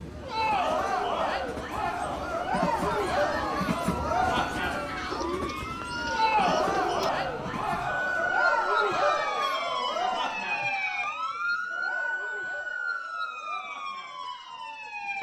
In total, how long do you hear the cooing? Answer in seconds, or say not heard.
2 s.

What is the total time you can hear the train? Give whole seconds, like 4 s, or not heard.
8 s.